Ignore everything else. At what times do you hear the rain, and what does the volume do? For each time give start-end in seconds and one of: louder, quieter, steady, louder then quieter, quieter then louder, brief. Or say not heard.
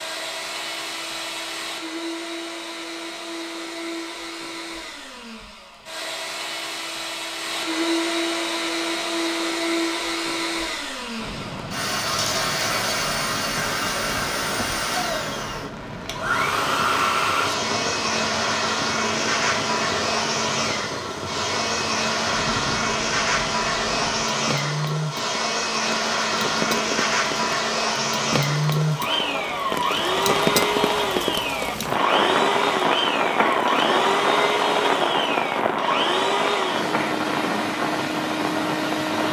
11.2-39.2 louder.